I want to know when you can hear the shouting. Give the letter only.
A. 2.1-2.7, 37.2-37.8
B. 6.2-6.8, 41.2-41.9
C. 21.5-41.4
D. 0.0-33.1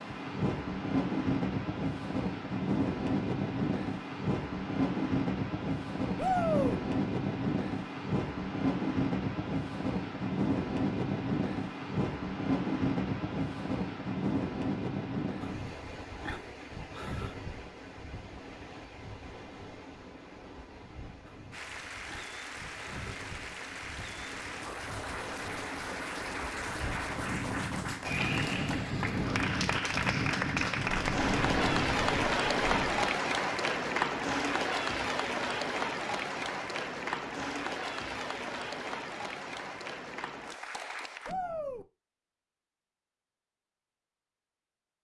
B.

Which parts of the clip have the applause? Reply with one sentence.
You can hear the applause from 21.5 to 41.4 s.